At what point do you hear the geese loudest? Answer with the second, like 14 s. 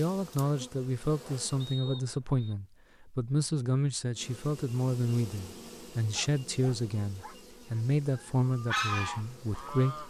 9 s.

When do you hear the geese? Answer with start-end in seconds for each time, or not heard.
8.1-10.0.